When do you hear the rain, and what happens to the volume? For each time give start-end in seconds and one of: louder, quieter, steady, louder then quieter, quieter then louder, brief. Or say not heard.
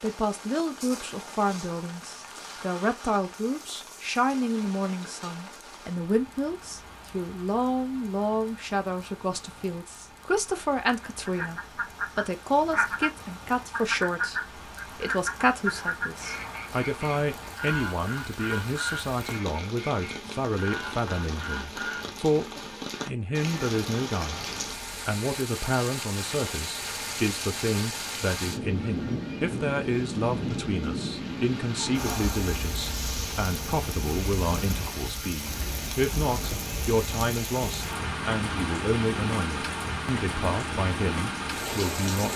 0.0-42.3 louder.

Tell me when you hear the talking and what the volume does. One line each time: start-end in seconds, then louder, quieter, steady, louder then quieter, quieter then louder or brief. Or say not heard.
0.0-24.4 steady
25.1-42.3 steady.